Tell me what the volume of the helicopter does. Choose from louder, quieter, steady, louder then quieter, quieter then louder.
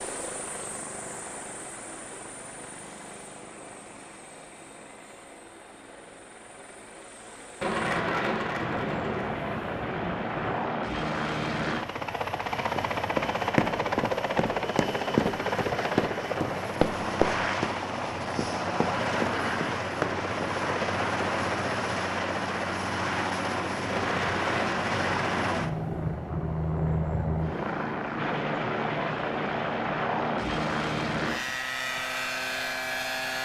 louder.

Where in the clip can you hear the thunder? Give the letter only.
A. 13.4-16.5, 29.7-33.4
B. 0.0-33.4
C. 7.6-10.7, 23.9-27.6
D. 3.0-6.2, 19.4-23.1
C.